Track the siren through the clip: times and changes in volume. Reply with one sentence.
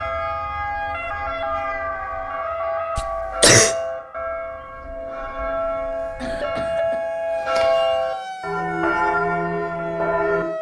The siren can be heard from 0.0 to 10.5 s, getting quieter then louder.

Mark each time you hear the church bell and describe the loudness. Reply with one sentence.
You can hear the church bell from 0.0 to 10.4 s, getting louder.